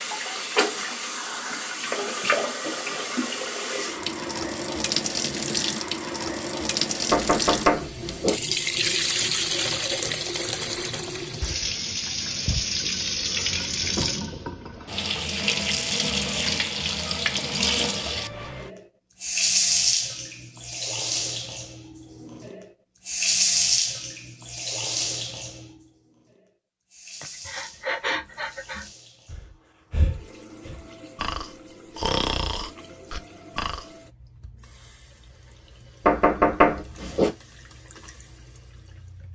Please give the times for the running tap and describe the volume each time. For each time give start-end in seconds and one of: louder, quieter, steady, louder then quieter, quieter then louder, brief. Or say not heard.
0.0-39.3 quieter.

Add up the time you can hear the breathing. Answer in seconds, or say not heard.
7 s.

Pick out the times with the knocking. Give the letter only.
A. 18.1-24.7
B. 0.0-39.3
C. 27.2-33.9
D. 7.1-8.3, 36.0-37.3
D.